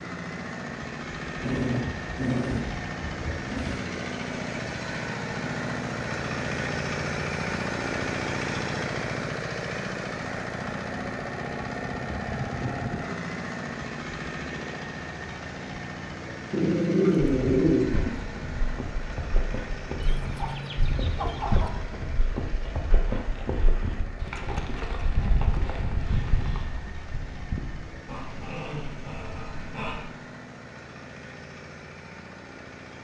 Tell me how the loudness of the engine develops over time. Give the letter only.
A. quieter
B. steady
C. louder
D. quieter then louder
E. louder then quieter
A.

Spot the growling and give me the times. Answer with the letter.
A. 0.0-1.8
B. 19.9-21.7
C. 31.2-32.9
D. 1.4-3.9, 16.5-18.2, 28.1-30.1
D.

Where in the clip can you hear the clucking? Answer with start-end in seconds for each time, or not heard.
19.9-21.7.